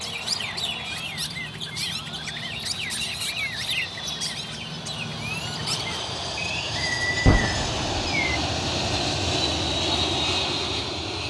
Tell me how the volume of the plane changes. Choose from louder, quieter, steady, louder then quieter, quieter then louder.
louder.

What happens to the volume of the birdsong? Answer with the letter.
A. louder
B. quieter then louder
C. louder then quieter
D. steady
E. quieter
D.